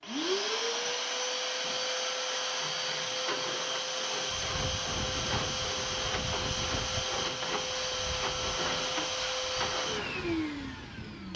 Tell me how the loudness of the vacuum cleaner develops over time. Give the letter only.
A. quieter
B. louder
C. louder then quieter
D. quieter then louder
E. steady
E.